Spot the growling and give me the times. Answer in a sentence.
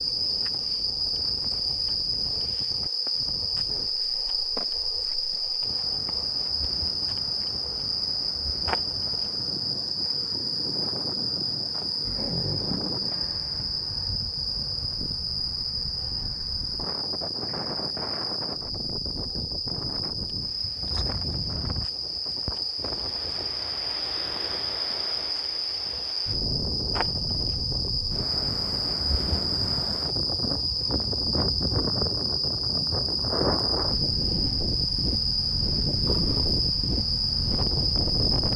You can hear the growling from 12.0 to 13.1 s and from 36.0 to 36.6 s.